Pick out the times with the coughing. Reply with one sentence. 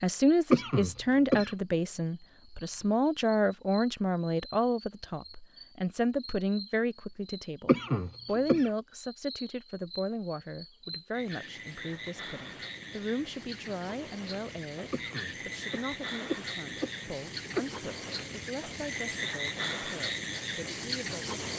The coughing can be heard from 0.5 to 1.5 s, from 7.7 to 8.7 s and from 14.9 to 17.7 s.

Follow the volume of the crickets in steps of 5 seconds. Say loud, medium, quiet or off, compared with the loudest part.
quiet, quiet, medium, loud, loud.